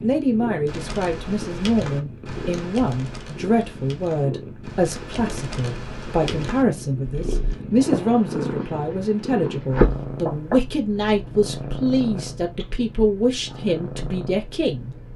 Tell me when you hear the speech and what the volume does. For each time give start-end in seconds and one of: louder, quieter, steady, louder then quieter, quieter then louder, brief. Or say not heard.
0.0-14.9 steady.